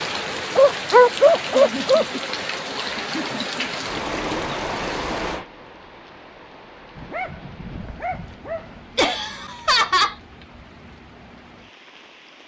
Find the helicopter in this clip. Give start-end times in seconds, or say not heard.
not heard.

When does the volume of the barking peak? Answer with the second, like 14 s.
1 s.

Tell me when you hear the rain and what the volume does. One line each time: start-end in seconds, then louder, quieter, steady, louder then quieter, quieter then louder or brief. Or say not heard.
0.0-12.4 quieter.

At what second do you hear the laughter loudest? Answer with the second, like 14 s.
10 s.